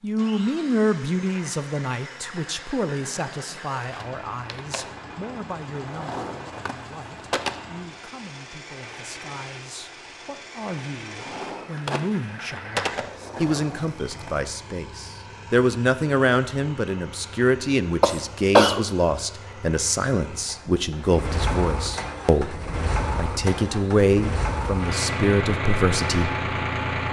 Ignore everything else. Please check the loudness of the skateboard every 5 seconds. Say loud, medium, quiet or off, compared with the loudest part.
medium, loud, loud, off, off, off.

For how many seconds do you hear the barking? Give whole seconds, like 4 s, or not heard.
not heard.